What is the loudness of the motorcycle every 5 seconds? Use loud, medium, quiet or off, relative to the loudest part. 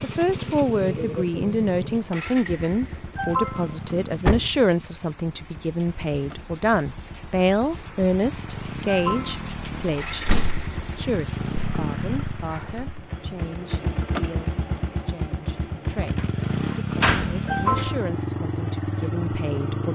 medium, medium, loud, loud.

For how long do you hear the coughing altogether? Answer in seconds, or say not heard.
2 s.